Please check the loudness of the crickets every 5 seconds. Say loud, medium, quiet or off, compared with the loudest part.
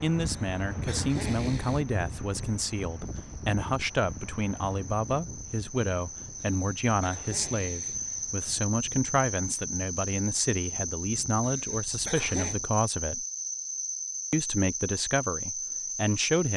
quiet, loud, loud, loud.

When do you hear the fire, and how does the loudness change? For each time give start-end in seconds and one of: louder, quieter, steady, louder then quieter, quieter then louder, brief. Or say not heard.
not heard.